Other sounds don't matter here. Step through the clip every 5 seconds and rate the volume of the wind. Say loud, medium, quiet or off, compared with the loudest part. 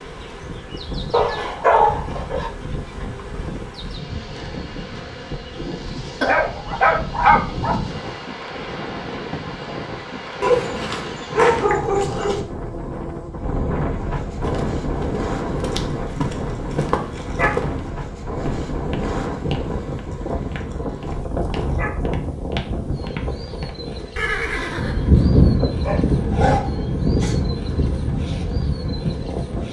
quiet, medium, medium, medium, medium, loud.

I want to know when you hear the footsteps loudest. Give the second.
17 s.